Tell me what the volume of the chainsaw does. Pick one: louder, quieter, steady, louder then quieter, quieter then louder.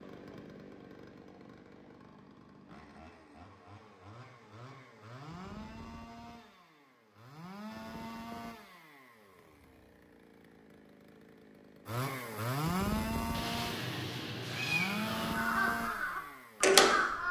louder.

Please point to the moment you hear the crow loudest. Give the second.
17 s.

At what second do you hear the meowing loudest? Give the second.
15 s.